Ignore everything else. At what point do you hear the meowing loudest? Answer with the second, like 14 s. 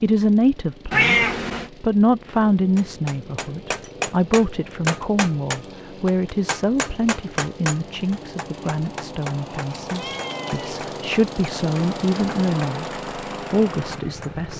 1 s.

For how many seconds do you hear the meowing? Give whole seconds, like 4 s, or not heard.
2 s.